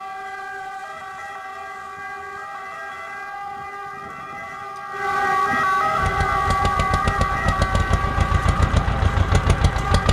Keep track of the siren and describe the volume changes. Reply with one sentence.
The volume of the siren goes up, then down.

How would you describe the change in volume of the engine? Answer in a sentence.
The loudness of the engine goes up.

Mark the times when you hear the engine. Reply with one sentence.
The engine can be heard from 6.0 to 10.0 s.